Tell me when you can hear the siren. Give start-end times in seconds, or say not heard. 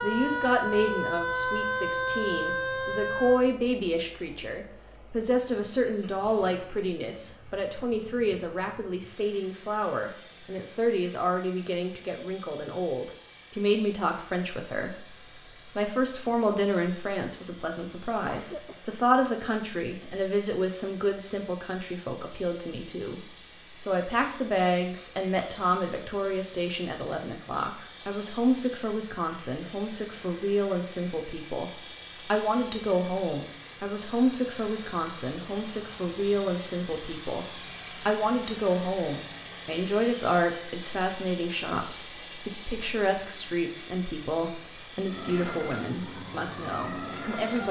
0.0-3.5, 45.0-47.6.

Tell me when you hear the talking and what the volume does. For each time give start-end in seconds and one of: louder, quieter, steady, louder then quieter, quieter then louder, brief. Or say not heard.
0.0-47.6 steady.